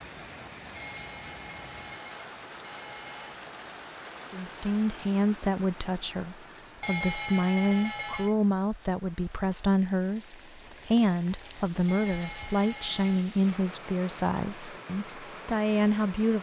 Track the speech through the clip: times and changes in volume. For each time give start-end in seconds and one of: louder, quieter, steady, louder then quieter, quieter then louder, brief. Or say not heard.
4.3-16.3 steady.